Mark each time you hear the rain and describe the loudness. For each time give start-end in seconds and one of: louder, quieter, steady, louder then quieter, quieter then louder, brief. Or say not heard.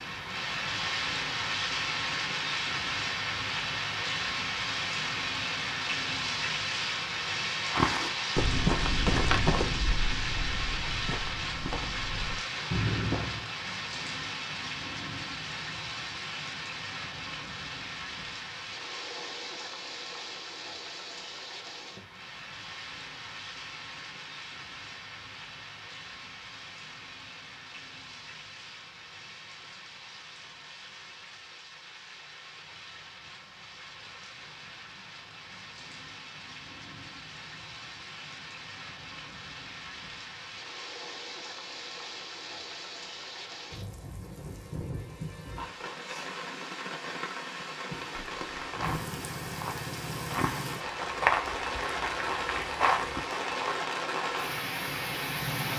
0.0-55.7 quieter then louder.